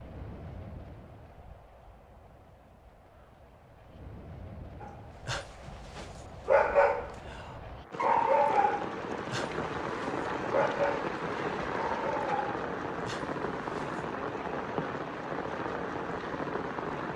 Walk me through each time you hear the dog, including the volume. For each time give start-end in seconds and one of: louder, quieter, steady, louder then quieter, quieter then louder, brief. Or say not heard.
4.8-13.8 quieter.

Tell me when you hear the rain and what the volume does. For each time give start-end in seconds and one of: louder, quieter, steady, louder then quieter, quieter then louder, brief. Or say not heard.
0.0-17.1 louder.